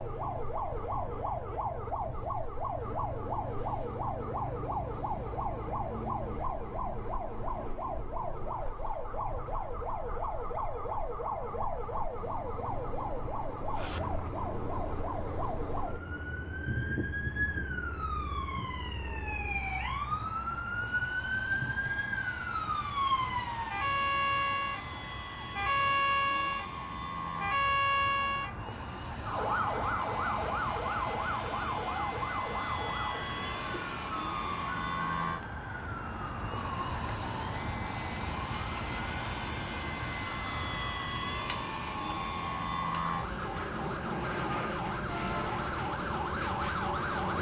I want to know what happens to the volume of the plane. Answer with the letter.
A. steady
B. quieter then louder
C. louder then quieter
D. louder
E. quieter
D.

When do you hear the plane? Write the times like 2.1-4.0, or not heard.
13.7-47.3.